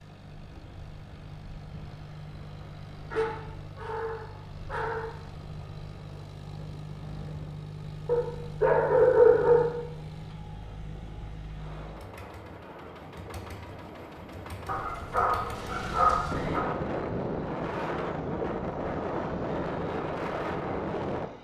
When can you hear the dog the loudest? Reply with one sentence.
The loudest moment of the dog is at 9 seconds.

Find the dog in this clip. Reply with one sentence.
You can hear the dog from 3.1 to 5.0 s, from 8.1 to 9.7 s and from 14.7 to 16.6 s.